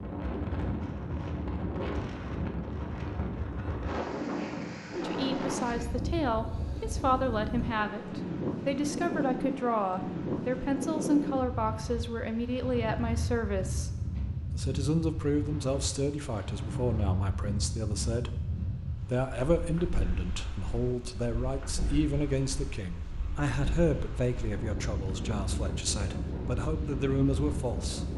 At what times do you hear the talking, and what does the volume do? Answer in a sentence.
You can hear the talking from 5.0 to 13.9 s, at a steady volume; and from 14.5 to 28.1 s, at a steady volume.